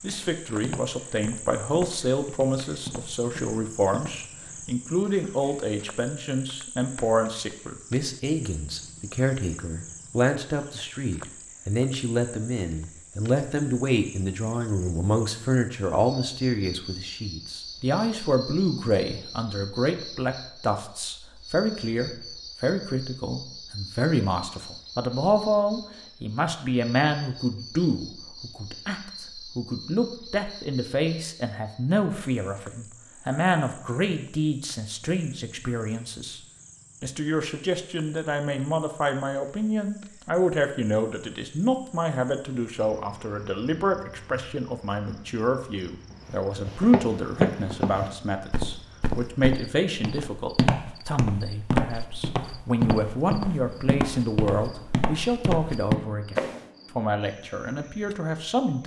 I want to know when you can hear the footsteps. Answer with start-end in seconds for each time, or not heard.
0.0-4.2, 46.2-56.6.